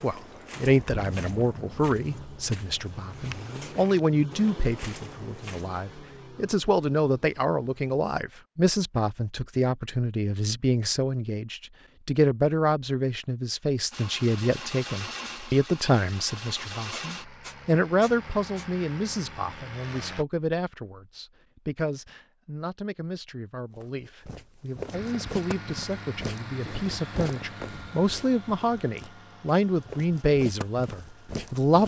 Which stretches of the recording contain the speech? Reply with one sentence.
You can hear the speech from 0.0 to 31.8 s.